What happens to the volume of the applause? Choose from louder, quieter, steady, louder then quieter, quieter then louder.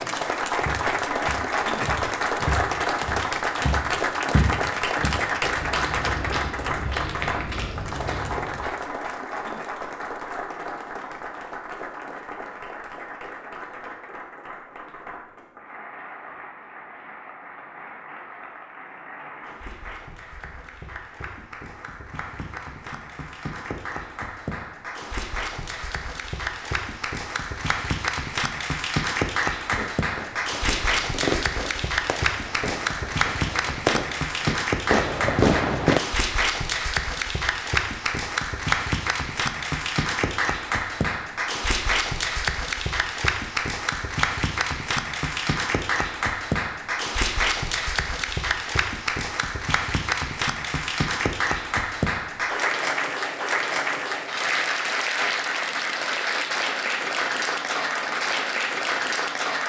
quieter then louder.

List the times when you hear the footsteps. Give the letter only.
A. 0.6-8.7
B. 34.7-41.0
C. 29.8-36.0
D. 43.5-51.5
A.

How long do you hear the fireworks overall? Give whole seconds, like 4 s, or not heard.
6 s.